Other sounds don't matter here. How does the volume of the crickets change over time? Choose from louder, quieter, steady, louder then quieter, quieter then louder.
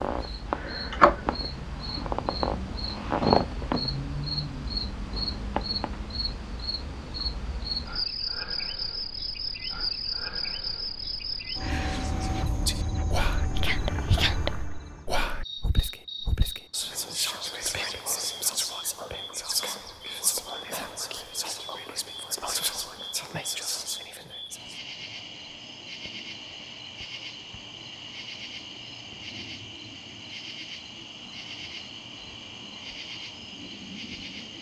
quieter.